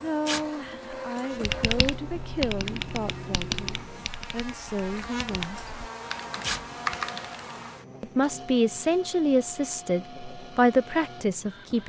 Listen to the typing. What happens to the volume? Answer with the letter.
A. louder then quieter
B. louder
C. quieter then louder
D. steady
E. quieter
C.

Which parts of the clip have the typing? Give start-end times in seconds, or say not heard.
1.4-7.4.